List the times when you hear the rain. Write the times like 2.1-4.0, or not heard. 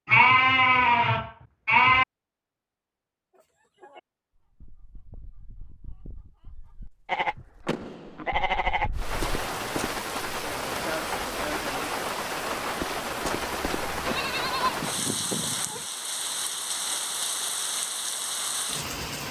8.9-19.2.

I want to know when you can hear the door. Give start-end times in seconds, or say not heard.
7.7-8.4.